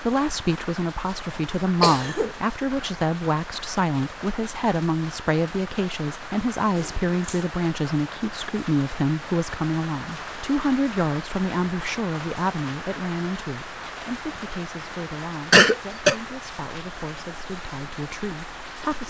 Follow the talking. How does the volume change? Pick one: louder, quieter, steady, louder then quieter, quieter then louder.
quieter.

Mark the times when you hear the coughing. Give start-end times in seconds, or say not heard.
1.8-2.4, 6.8-7.5, 15.5-16.1.